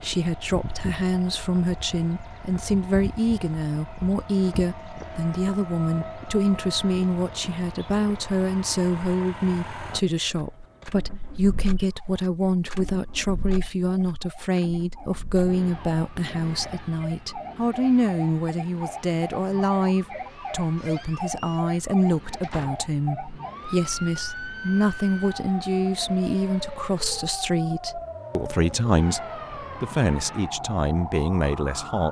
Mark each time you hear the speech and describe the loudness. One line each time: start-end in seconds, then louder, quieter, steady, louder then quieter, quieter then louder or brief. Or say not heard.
0.0-32.0 steady.